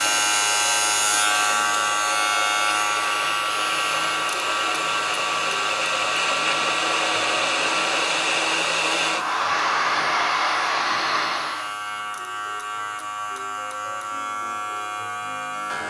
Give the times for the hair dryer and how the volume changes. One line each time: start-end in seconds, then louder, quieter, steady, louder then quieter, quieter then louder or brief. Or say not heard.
0.0-11.8 louder.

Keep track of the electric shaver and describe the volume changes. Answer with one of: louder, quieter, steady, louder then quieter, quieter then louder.
quieter.